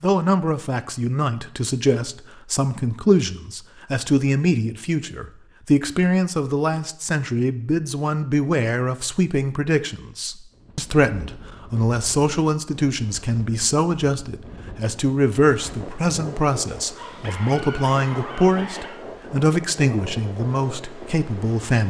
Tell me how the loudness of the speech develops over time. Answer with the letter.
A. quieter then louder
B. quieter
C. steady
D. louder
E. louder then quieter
C.